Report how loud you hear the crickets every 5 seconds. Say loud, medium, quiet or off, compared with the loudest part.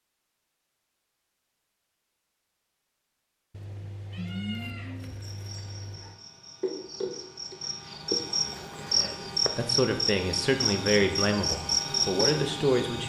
off, loud, loud.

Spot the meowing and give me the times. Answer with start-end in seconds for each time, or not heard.
3.5-6.2.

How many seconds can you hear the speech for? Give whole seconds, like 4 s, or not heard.
4 s.